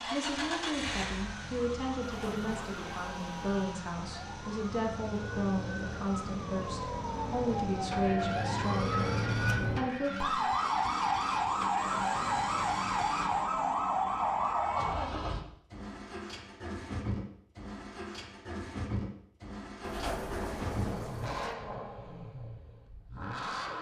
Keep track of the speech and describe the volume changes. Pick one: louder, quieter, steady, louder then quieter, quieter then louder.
steady.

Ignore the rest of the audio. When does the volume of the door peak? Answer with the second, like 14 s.
20 s.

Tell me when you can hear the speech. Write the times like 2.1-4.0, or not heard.
0.0-10.2.